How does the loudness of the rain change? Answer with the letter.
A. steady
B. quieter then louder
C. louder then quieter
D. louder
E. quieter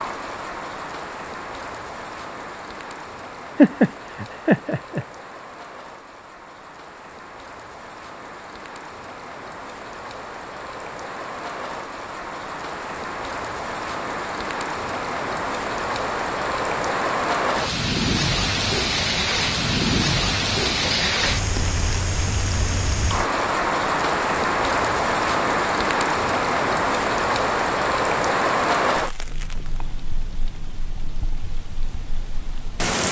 D.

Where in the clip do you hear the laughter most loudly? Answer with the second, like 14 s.
4 s.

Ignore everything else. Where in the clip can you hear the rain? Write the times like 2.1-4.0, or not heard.
0.0-33.0.